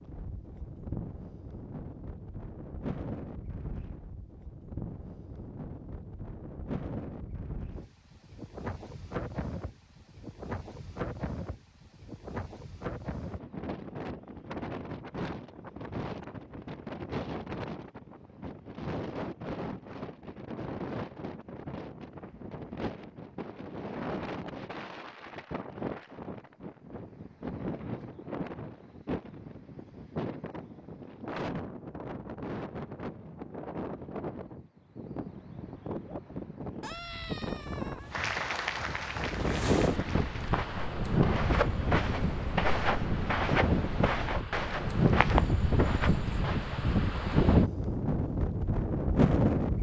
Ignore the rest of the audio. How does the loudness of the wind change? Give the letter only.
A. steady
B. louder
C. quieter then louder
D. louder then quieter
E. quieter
B.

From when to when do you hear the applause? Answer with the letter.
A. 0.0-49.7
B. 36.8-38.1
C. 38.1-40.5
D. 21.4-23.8
C.